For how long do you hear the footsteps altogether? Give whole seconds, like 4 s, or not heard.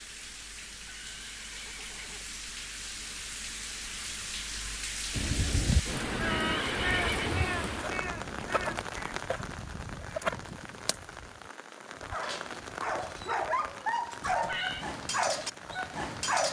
not heard.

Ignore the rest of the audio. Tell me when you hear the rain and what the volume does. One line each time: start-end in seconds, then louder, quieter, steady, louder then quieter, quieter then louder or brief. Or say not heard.
0.0-16.4 louder then quieter.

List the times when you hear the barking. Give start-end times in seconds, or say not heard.
12.1-16.4.